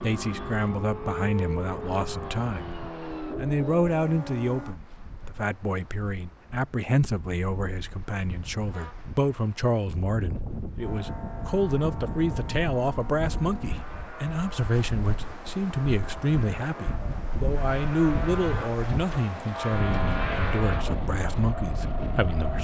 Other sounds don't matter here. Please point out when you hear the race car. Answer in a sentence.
The race car can be heard from 0.0 to 4.8 s and from 10.8 to 22.5 s.